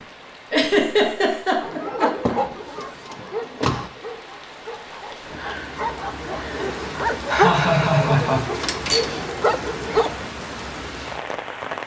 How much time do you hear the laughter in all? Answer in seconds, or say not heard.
3 s.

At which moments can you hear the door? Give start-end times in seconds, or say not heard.
2.2-3.9, 8.5-9.2.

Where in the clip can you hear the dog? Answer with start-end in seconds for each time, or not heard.
1.6-10.2.